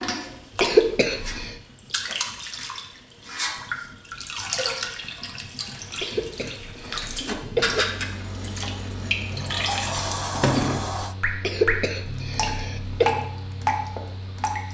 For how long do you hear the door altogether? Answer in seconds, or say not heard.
2 s.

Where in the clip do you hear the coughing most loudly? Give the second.
1 s.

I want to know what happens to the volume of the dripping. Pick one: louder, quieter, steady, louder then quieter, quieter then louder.
louder.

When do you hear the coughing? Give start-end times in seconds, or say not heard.
0.6-1.5, 6.0-7.8, 11.4-13.1.